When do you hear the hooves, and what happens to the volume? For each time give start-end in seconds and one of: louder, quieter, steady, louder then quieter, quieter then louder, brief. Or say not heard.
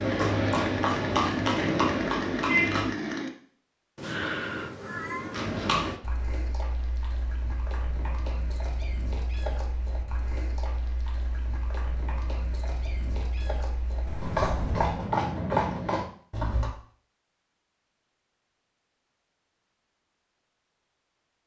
0.0-2.9 brief
5.3-16.7 quieter then louder.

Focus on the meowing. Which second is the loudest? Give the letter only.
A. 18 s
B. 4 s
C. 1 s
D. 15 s
B.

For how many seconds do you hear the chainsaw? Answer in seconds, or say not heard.
3 s.